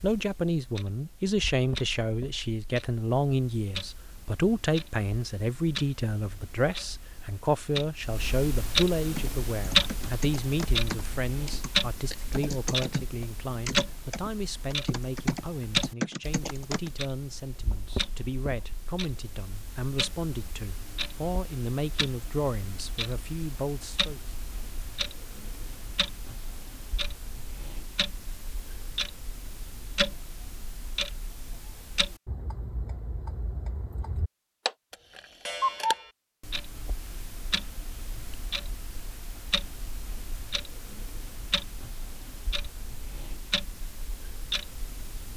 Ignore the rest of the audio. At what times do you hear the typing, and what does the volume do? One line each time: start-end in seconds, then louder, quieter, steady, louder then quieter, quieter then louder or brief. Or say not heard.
9.1-16.9 louder.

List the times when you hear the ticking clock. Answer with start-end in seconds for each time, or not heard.
0.0-45.3.